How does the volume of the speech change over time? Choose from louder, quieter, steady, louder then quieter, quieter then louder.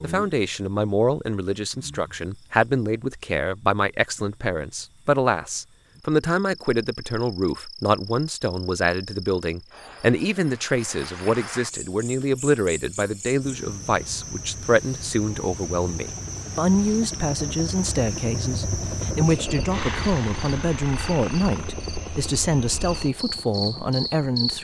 steady.